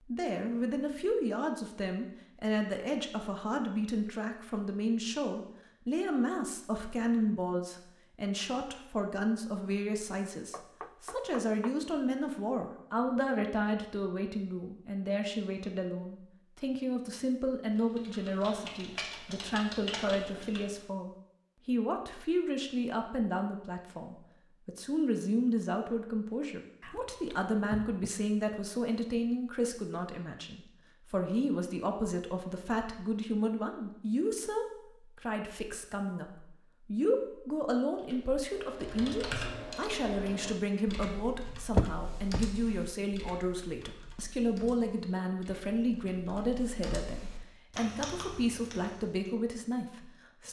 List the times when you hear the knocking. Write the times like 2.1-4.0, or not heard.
10.5-11.8, 26.8-28.1, 41.8-42.4.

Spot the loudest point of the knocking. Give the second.
42 s.